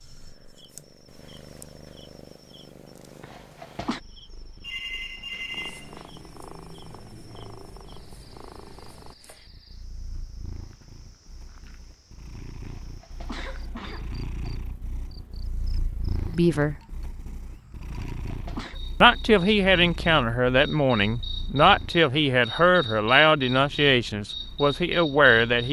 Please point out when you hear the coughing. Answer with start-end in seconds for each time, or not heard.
3.2-4.0, 12.7-14.2, 17.9-18.8.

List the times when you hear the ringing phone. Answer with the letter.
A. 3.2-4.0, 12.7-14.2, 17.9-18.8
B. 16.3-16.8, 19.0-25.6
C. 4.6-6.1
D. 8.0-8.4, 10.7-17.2
C.